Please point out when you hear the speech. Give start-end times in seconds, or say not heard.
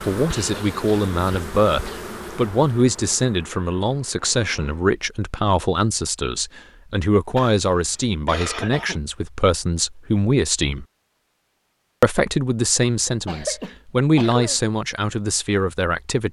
0.0-10.8, 12.0-16.2.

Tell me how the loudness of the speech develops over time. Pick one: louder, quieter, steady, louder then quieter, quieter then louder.
steady.